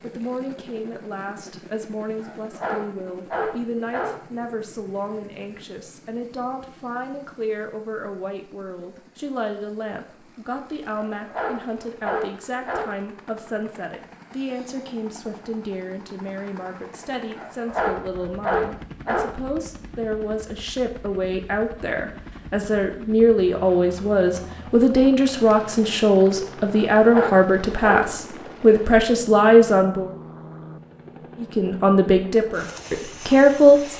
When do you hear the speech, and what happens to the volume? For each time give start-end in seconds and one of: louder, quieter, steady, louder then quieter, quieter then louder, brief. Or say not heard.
0.0-30.1 louder
31.4-33.9 brief.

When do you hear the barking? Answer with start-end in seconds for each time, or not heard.
2.2-4.2, 10.9-12.9, 17.4-19.4, 26.7-28.1.